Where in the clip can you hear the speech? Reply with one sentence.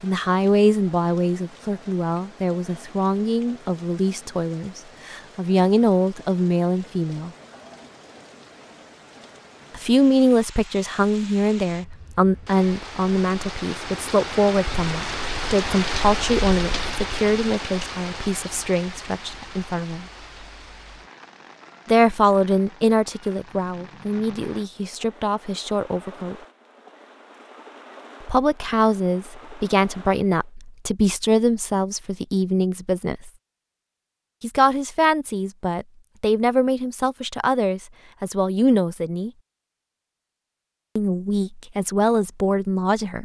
You can hear the speech from 0.0 to 7.3 s, from 9.7 to 20.1 s, from 21.9 to 26.4 s, from 28.2 to 33.3 s, from 34.4 to 39.3 s and from 41.0 to 43.2 s.